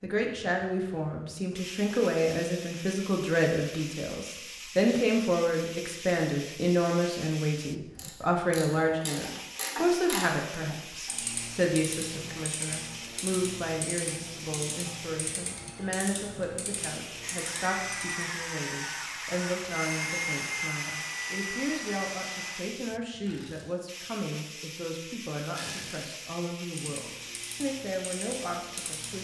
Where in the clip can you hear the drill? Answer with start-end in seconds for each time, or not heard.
17.2-22.6.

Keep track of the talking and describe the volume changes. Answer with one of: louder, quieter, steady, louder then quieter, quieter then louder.
quieter.